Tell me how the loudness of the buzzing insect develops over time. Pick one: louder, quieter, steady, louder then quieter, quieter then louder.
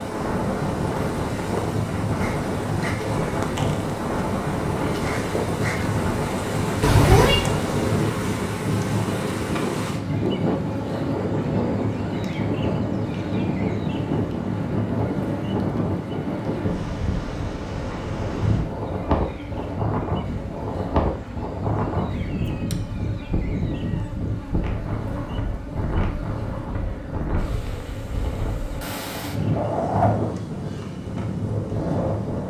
quieter.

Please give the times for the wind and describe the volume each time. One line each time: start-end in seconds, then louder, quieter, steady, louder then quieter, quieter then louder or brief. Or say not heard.
0.0-32.4 steady.